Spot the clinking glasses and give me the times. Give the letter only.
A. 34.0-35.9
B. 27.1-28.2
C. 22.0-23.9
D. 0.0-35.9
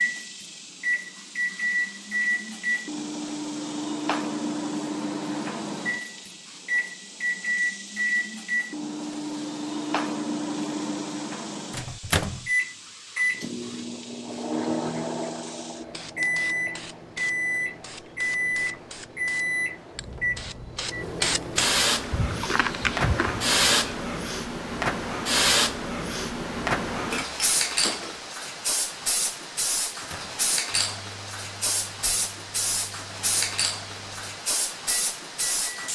B.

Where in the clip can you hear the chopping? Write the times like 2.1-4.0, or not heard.
not heard.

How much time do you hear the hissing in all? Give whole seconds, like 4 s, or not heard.
36 s.